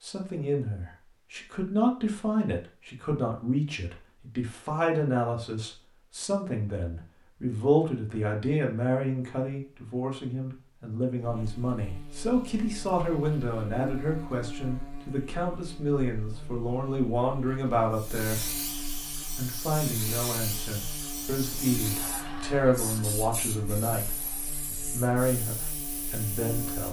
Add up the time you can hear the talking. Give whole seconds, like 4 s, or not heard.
26 s.